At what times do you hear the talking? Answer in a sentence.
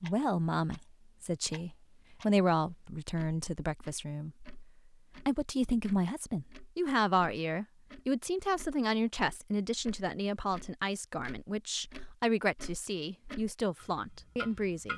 The talking can be heard from 0.0 to 4.5 s and from 5.2 to 14.9 s.